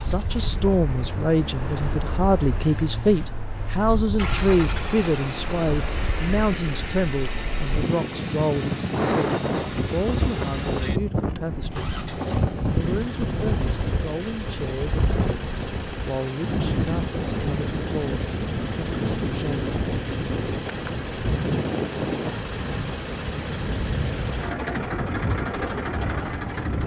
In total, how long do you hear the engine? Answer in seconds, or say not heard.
27 s.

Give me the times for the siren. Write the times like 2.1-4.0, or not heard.
not heard.